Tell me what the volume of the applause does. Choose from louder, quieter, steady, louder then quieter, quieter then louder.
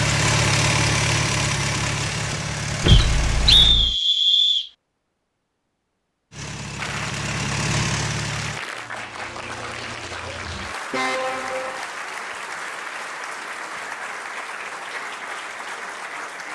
steady.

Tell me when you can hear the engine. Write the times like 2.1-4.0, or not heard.
0.0-3.8, 6.3-8.6.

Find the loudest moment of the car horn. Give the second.
3 s.